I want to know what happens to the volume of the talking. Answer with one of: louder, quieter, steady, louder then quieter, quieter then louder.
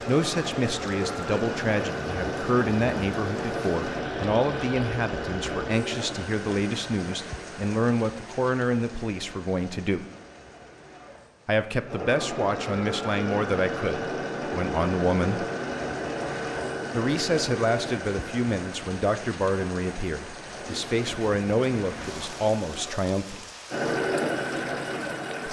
steady.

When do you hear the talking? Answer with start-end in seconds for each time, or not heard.
0.1-10.1, 11.4-15.4, 16.9-23.4.